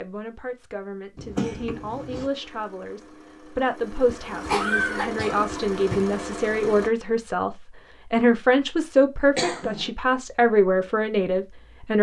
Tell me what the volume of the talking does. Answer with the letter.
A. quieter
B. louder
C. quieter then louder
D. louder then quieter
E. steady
B.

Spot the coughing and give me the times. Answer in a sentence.
You can hear the coughing from 1.1 to 2.3 s, from 4.0 to 6.0 s and from 9.3 to 9.9 s.